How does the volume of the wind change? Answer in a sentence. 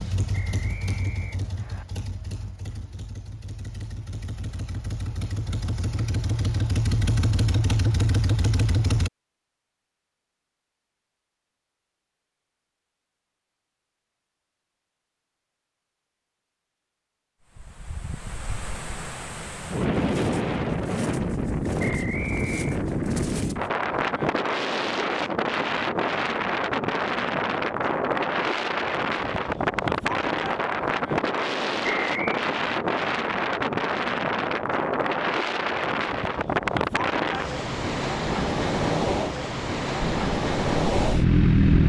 The volume of the wind stays about the same.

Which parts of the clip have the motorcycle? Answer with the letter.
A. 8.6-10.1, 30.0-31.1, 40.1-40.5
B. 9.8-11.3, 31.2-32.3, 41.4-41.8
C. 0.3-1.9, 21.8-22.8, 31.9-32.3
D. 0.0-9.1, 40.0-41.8
D.